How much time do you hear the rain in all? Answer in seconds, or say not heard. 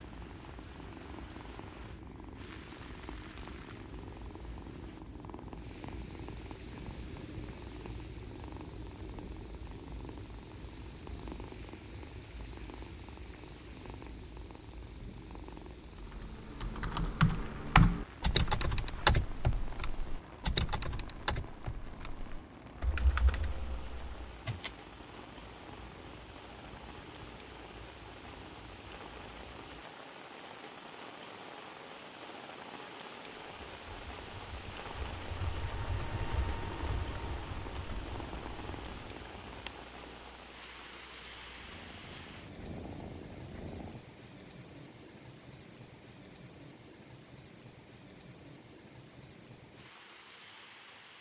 51 s.